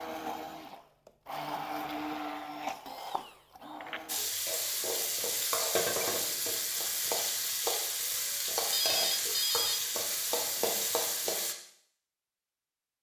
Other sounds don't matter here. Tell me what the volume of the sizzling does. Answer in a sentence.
The volume of the sizzling stays about the same.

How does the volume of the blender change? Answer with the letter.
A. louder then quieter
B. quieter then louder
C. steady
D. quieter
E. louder
A.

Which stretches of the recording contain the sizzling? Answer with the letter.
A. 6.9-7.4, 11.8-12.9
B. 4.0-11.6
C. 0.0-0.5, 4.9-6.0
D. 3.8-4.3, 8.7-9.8
B.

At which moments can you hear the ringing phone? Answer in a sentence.
The ringing phone can be heard from 3.8 to 4.3 s and from 8.7 to 9.8 s.